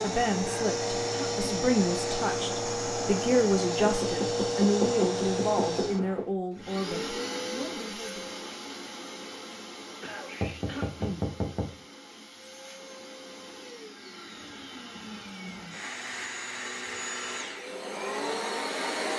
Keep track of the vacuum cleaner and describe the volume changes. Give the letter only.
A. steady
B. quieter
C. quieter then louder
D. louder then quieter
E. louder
C.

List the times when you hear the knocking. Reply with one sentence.
You can hear the knocking from 3.8 to 6.3 s and from 10.4 to 11.8 s.